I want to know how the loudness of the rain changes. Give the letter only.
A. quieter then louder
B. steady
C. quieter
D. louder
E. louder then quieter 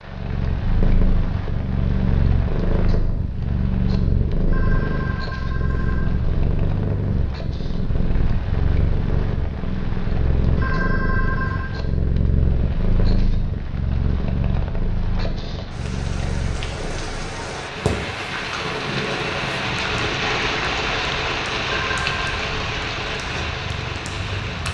D.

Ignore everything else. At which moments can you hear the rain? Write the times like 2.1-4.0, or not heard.
0.0-24.6.